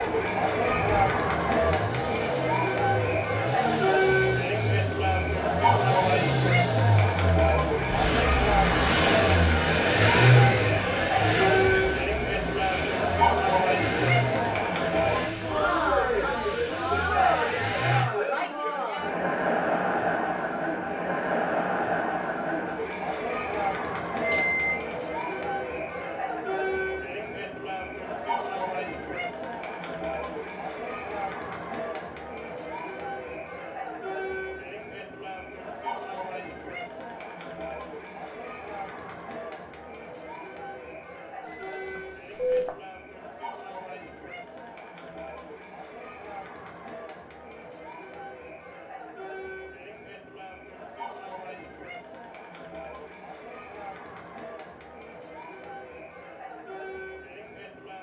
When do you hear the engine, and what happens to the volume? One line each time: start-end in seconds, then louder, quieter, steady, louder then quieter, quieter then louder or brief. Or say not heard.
0.0-18.1 louder then quieter.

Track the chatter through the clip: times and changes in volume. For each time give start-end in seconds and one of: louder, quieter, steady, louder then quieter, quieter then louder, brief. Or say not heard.
0.0-57.9 quieter.